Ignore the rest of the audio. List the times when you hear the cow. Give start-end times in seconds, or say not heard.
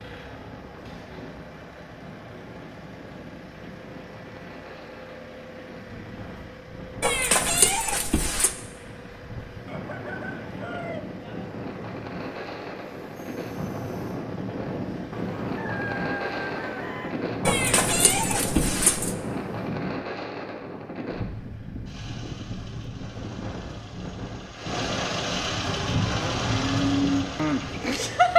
25.9-28.3.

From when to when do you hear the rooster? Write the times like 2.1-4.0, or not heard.
9.7-11.6, 15.2-17.1.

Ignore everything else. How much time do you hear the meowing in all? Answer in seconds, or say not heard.
3 s.